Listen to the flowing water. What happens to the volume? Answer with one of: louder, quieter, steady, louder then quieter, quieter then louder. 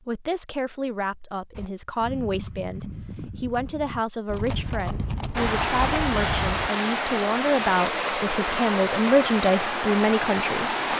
steady.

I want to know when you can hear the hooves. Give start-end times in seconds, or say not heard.
1.6-6.7.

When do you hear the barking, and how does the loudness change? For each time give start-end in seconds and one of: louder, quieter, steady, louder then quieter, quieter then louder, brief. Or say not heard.
not heard.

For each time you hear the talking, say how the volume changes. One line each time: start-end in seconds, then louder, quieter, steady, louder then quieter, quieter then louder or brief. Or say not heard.
0.1-10.8 louder.